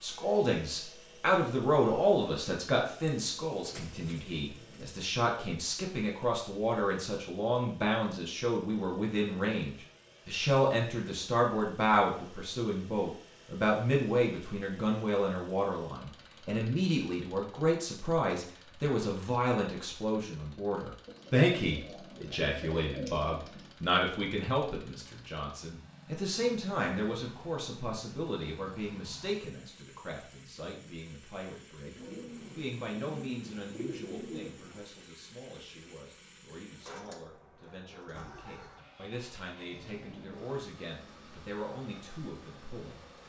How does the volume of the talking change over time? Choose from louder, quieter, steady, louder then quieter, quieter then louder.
quieter.